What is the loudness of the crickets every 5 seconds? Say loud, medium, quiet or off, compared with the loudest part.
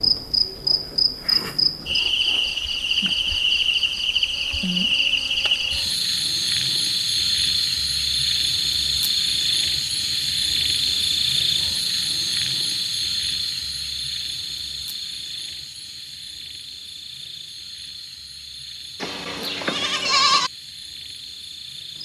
loud, loud, loud, quiet, quiet.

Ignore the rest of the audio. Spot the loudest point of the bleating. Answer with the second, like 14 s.
20 s.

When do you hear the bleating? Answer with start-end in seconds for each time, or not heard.
19.0-20.5.